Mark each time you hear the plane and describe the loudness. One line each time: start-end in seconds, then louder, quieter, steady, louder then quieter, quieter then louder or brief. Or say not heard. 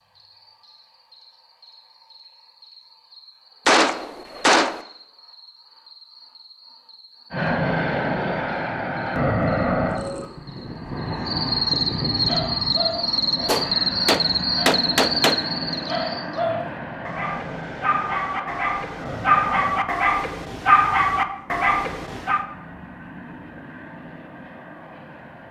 7.3-25.4 quieter.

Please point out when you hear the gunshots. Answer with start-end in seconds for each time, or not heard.
3.6-4.8, 13.4-15.4.